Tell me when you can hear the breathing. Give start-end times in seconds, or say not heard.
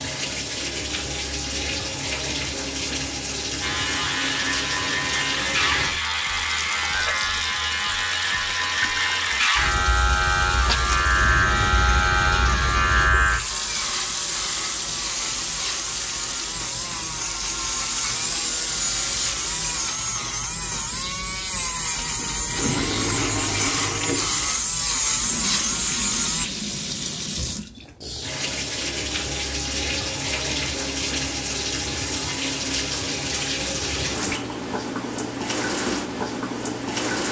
not heard.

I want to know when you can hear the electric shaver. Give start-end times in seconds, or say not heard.
3.6-26.5.